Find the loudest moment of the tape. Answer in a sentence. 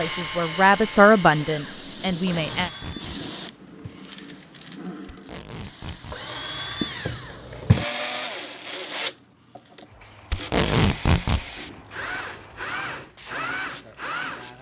The loudest moment of the tape is at 11 seconds.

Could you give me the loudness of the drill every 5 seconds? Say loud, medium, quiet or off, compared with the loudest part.
medium, loud, medium.